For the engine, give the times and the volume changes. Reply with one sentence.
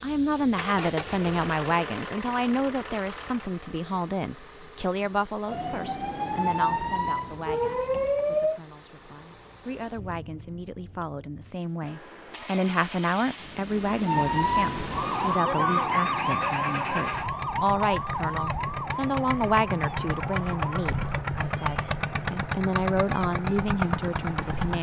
You can hear the engine from 0.0 to 24.7 s, getting quieter then louder.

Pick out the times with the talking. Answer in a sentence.
You can hear the talking from 0.0 to 24.7 s.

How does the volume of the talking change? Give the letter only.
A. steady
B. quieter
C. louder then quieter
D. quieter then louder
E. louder
D.